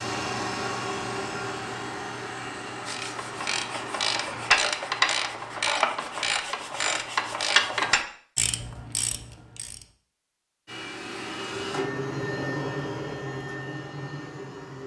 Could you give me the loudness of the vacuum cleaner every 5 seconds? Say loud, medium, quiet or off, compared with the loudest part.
loud, off, loud.